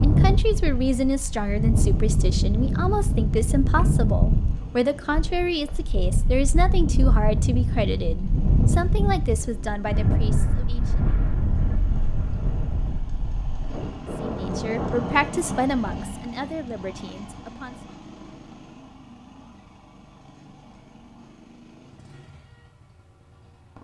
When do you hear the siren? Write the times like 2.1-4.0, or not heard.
not heard.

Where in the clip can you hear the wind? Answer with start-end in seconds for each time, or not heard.
0.0-16.1.